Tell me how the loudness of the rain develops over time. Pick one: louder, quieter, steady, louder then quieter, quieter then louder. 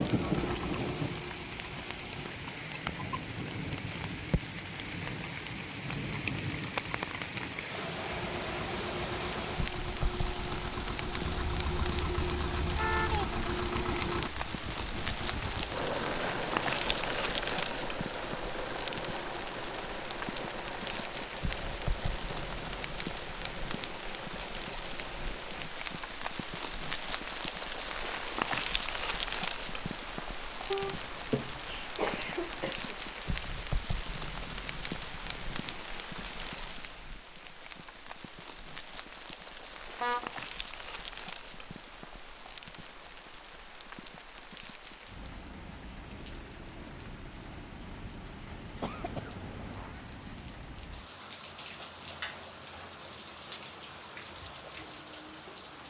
quieter.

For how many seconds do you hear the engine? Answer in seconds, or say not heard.
20 s.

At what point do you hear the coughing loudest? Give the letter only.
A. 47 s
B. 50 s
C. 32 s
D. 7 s
C.